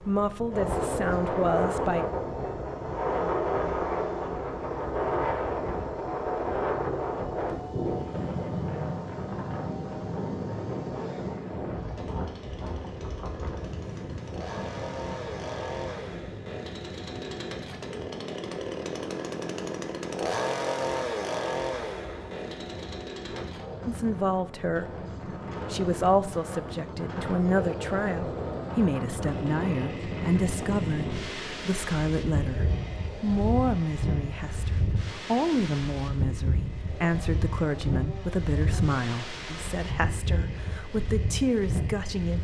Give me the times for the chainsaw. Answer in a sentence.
You can hear the chainsaw from 0.0 to 42.3 s.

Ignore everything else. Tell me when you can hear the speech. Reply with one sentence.
The speech can be heard from 0.0 to 2.0 s, from 23.9 to 25.0 s and from 25.7 to 42.3 s.